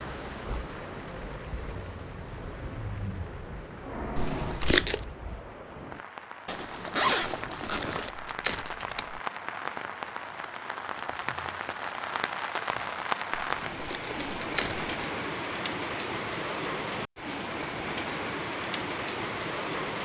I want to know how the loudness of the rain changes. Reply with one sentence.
The loudness of the rain goes up.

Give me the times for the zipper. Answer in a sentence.
The zipper can be heard from 6.5 to 8.1 s.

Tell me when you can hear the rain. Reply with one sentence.
You can hear the rain from 0.0 to 19.9 s.